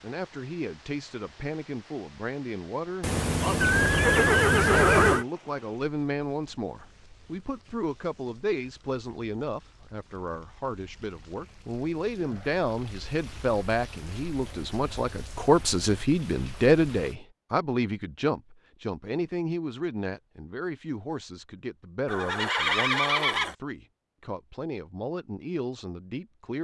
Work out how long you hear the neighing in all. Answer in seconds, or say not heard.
4 s.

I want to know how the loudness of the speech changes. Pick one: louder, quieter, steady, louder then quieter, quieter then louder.
louder then quieter.